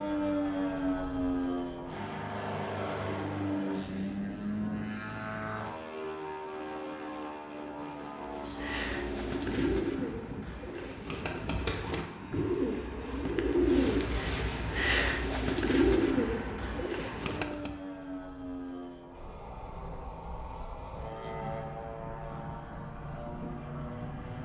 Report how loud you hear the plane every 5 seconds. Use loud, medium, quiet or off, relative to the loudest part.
loud, medium, quiet, medium, medium.